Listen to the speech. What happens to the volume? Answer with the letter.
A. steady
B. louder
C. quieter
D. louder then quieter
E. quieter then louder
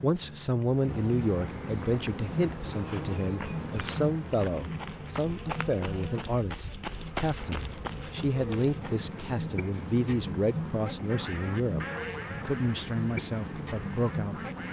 A.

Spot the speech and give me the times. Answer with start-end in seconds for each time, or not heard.
0.0-14.3.